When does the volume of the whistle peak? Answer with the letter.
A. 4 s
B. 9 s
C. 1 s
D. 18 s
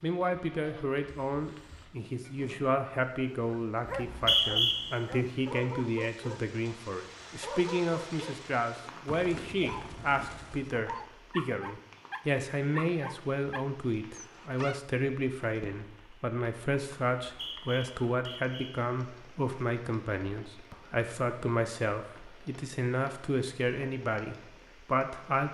A.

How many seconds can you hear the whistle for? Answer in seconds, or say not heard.
2 s.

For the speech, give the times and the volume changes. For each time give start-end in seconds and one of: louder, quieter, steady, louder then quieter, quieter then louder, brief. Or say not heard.
0.0-25.4 steady.